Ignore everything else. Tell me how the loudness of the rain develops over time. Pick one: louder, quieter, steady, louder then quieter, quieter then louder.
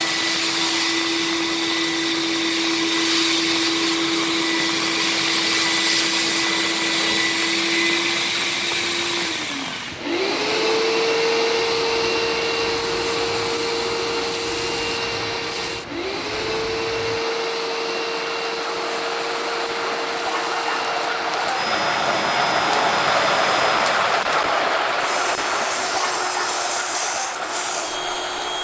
louder.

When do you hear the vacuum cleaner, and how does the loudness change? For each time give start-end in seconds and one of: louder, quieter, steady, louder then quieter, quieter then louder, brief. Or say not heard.
0.0-28.5 quieter.